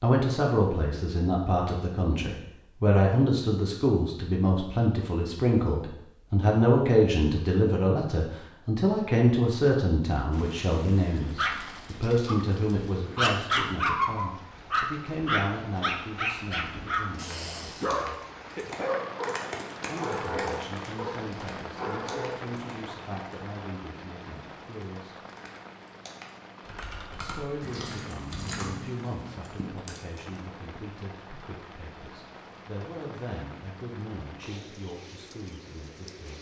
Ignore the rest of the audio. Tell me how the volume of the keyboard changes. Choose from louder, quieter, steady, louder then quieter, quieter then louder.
quieter then louder.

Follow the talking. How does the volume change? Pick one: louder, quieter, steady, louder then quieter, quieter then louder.
quieter.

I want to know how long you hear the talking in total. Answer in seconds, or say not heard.
33 s.